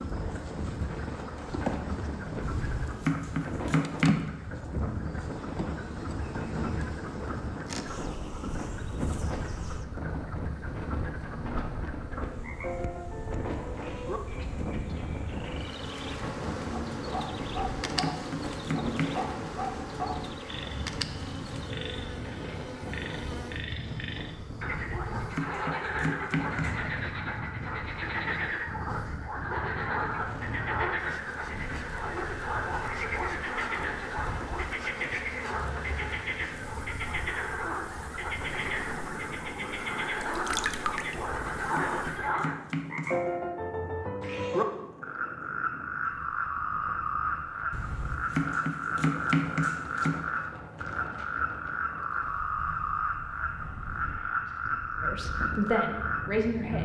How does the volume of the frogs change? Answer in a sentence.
The loudness of the frogs goes up.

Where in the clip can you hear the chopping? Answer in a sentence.
The chopping can be heard from 2.5 to 4.3 s, from 17.6 to 19.1 s, from 24.9 to 26.8 s, from 41.2 to 43.2 s and from 47.7 to 50.2 s.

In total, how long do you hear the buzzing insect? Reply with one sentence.
The buzzing insect can be heard for 42 seconds in total.